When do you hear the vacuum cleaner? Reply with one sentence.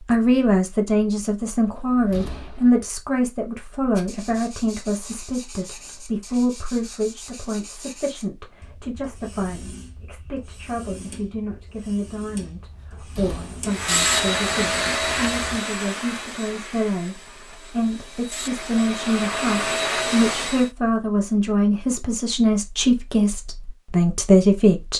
The vacuum cleaner can be heard from 13.7 to 20.7 s.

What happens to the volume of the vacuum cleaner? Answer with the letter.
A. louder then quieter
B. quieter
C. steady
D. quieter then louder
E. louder
D.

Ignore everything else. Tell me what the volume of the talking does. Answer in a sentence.
The loudness of the talking goes down, then up.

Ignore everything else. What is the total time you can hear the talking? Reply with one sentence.
You can hear the talking for 25 seconds altogether.